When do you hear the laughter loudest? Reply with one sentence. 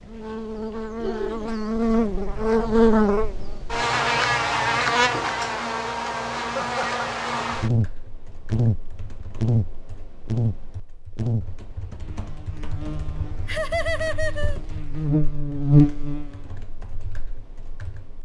The loudest moment of the laughter is at 14 seconds.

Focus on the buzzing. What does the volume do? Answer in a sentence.
The loudness of the buzzing goes down, then up.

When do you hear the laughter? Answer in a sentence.
The laughter can be heard from 1.0 to 1.5 s, from 6.5 to 7.0 s and from 13.4 to 14.6 s.